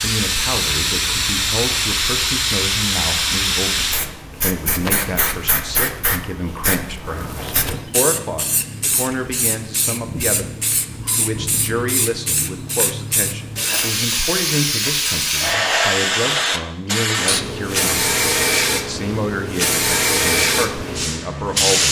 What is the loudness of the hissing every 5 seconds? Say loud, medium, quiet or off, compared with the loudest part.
loud, medium, medium, loud, loud.